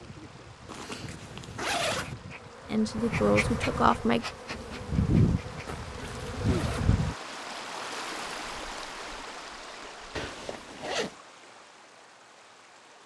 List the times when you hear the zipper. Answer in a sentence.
You can hear the zipper from 0.7 to 2.1 s, from 5.7 to 7.0 s and from 10.2 to 11.2 s.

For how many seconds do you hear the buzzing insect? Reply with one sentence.
The buzzing insect can be heard for 7 seconds in total.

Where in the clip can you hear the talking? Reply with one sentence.
You can hear the talking from 2.6 to 4.2 s.